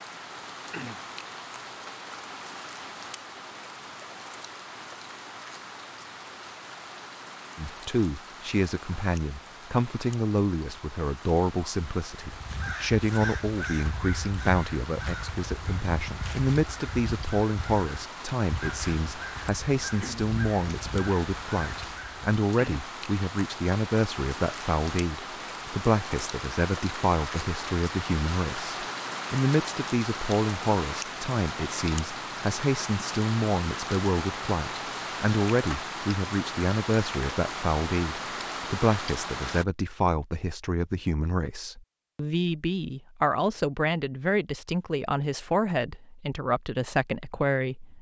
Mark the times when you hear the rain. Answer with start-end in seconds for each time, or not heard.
0.0-39.6.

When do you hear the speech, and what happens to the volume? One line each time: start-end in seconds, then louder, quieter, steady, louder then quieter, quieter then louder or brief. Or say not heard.
7.5-47.9 steady.